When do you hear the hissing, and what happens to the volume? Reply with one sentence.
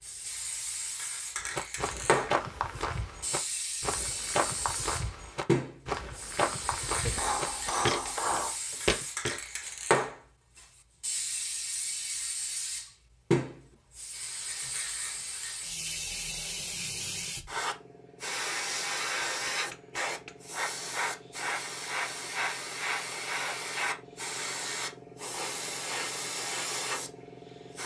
The hissing can be heard from 0.0 to 27.8 s, at a steady volume.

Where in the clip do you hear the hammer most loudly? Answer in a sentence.
The loudest moment of the hammer is at 8 seconds.